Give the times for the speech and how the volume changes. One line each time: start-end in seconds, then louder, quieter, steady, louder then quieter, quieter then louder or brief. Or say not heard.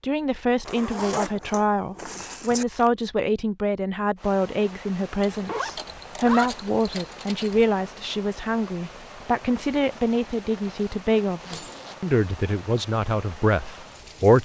0.0-14.3 steady.